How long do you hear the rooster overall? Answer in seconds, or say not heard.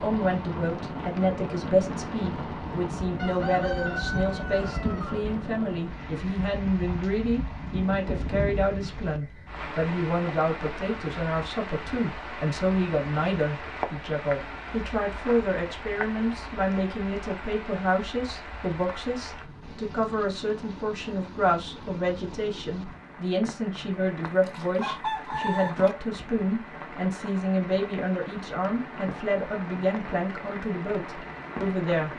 4 s.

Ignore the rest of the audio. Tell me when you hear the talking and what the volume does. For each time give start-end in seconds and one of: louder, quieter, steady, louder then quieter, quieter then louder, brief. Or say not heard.
0.0-32.1 steady.